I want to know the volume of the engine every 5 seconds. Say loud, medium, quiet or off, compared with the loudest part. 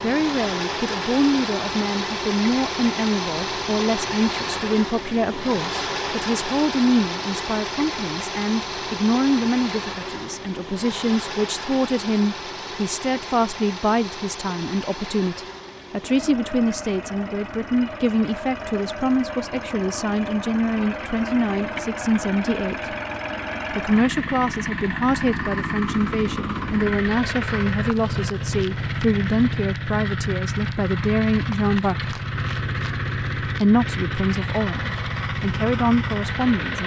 loud, loud, medium, medium, loud, loud, loud, loud.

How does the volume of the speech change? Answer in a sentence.
The volume of the speech stays about the same.